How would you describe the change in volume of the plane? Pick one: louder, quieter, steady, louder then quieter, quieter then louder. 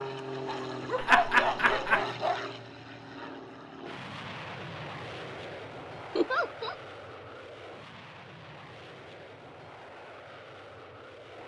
quieter.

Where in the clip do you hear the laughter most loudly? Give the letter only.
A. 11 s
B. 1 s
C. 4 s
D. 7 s
B.